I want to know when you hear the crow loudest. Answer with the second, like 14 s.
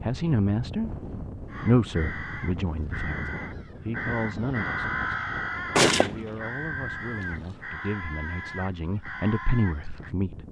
5 s.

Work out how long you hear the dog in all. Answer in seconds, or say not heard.
not heard.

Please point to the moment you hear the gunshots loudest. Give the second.
6 s.